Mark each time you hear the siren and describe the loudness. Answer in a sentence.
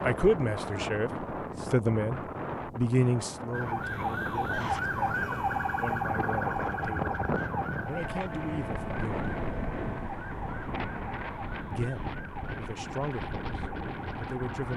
The siren can be heard from 3.5 to 14.6 s, getting quieter.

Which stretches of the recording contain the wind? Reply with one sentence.
The wind can be heard from 0.0 to 14.7 s.